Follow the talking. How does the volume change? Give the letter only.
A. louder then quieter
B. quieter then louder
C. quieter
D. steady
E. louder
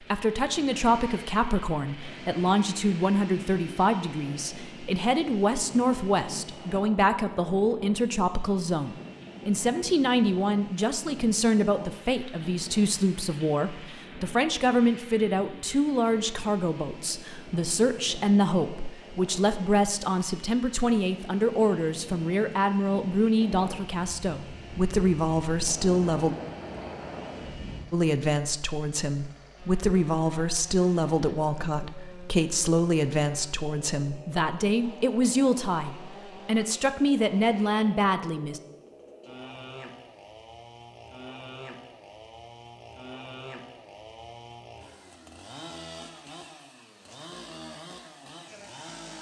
D.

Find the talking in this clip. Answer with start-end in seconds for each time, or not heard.
0.1-26.4, 27.9-38.6.